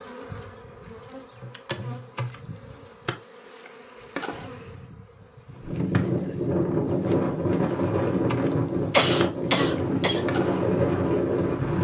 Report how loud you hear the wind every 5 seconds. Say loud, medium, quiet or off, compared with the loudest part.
off, loud, loud.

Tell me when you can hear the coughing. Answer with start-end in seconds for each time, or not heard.
8.5-10.2.